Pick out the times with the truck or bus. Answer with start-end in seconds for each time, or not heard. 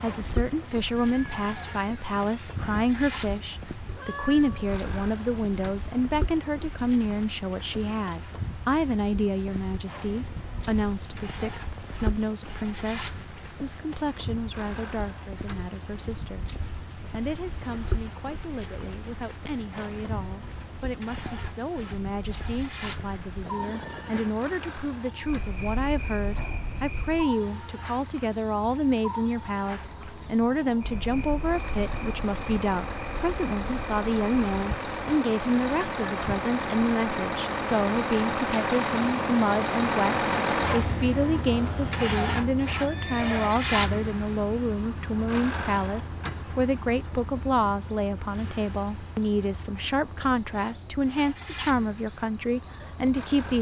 0.0-53.5.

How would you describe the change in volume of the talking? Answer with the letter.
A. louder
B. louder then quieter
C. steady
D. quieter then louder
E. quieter
D.